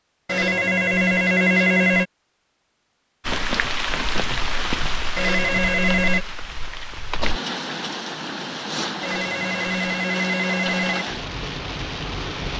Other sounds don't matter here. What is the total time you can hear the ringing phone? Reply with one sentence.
The ringing phone can be heard for 5 seconds in total.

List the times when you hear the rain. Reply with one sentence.
You can hear the rain from 3.2 to 12.5 s.